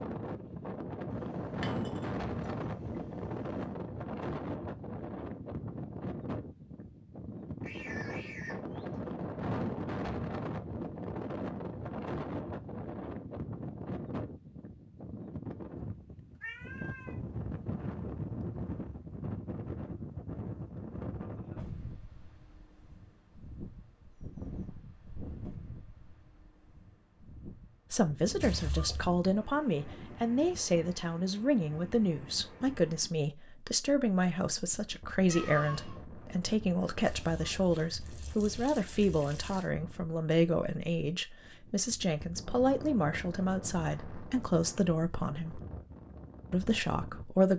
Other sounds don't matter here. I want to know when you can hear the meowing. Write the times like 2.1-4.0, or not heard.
7.6-9.0, 16.4-17.1, 35.3-36.0.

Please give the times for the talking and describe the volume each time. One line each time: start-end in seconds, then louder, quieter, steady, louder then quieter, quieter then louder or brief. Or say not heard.
27.9-45.6 steady
46.5-47.5 brief.